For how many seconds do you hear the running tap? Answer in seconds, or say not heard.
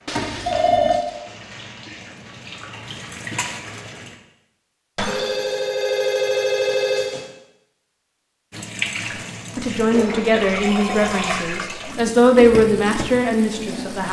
10 s.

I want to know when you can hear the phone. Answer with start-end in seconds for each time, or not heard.
0.1-1.0, 5.0-7.2, 10.3-11.4.